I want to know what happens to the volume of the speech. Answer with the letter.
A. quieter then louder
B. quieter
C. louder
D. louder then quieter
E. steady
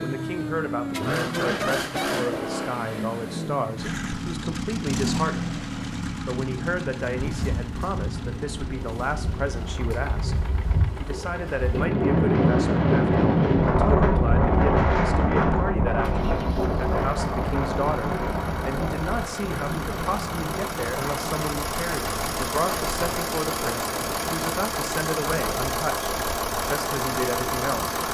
E.